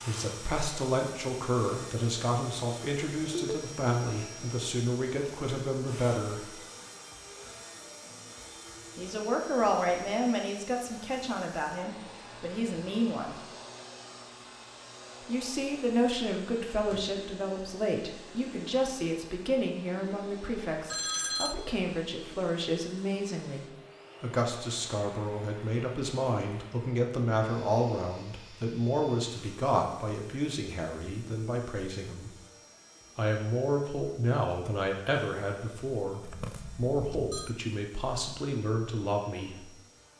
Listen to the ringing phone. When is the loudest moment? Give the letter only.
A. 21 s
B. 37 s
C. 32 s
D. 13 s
A.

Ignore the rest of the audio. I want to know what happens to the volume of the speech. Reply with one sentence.
The loudness of the speech stays about the same.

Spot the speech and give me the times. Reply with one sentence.
You can hear the speech from 0.1 to 6.5 s, from 8.9 to 13.3 s, from 15.2 to 32.3 s and from 33.1 to 39.6 s.